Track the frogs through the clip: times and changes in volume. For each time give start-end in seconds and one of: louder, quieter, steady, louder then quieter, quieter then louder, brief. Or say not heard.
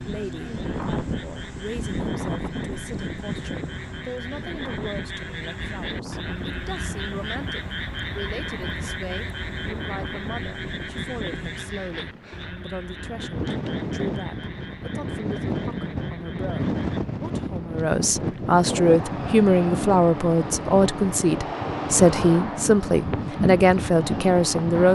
0.0-17.1 louder then quieter.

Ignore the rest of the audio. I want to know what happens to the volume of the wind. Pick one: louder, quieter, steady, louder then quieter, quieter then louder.
quieter then louder.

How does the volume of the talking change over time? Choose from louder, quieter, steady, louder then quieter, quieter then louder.
louder.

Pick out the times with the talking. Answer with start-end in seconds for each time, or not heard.
0.0-24.9.